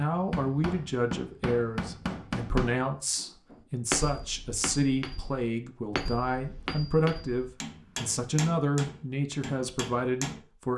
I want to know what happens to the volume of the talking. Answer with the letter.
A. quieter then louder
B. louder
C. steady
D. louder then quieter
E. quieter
C.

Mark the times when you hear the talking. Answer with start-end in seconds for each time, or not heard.
0.0-10.7.